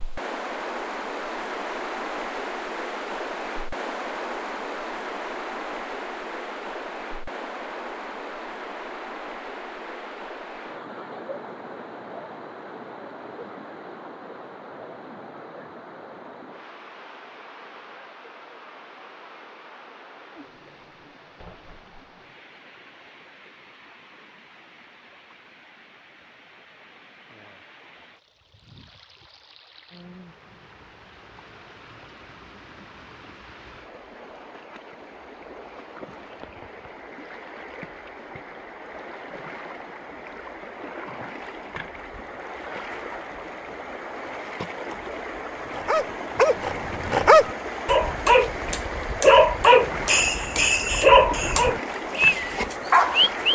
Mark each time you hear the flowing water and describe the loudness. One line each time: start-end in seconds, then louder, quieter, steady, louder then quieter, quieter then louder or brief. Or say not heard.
0.0-53.4 quieter then louder.